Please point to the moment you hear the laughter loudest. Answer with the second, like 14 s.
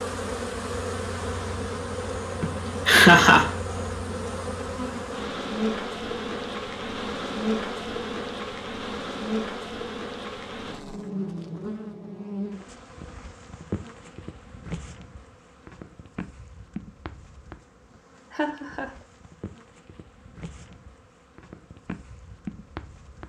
3 s.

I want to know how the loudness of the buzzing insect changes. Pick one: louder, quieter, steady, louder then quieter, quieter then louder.
quieter.